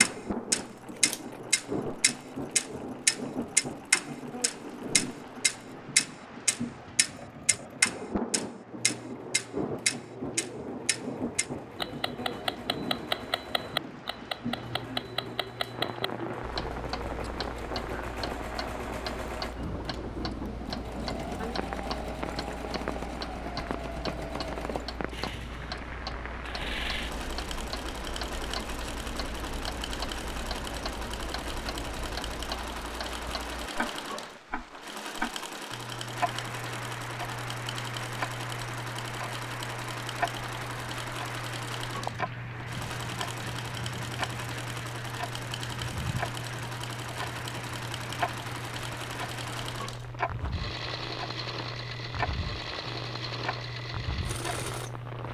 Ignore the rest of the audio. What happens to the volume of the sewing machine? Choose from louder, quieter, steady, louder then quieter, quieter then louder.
louder.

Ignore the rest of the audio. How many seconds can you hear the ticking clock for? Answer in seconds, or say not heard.
55 s.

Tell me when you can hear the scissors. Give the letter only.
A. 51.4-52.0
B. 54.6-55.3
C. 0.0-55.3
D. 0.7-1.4
D.